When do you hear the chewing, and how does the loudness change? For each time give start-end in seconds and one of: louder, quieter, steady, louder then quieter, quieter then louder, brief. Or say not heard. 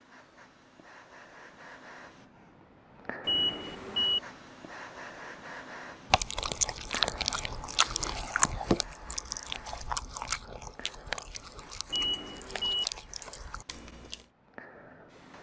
6.1-14.2 quieter.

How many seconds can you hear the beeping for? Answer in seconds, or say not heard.
2 s.